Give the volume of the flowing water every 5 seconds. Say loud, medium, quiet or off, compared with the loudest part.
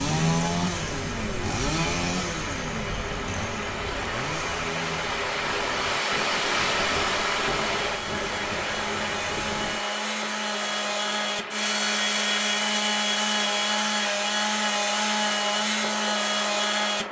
medium, loud, medium, medium.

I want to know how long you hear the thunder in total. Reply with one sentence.
You can hear the thunder for 4 seconds altogether.